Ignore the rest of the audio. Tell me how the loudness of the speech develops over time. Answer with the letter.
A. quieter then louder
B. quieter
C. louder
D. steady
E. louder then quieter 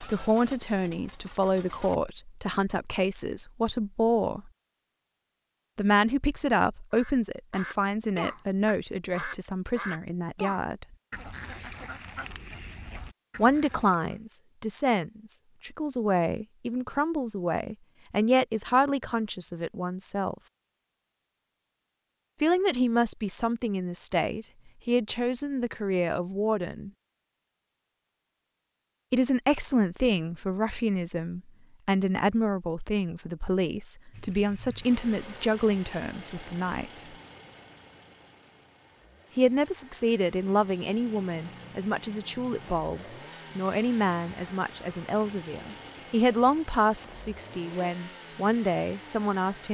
D.